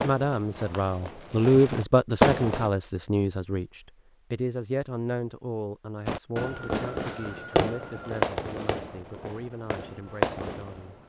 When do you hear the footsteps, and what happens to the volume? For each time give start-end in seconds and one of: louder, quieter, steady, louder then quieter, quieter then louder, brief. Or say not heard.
not heard.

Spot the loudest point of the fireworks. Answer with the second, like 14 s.
2 s.